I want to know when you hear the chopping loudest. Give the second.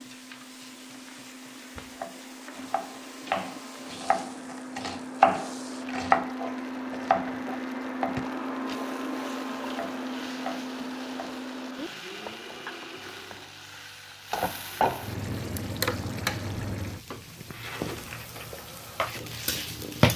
5 s.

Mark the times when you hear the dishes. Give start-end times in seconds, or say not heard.
not heard.